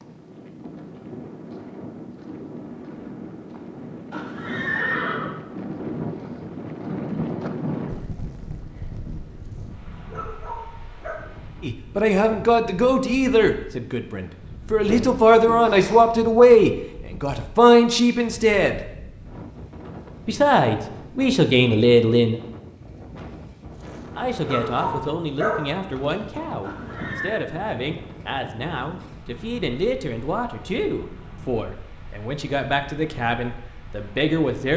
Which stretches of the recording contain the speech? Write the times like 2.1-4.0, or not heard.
11.6-18.8, 20.2-22.4, 24.1-34.7.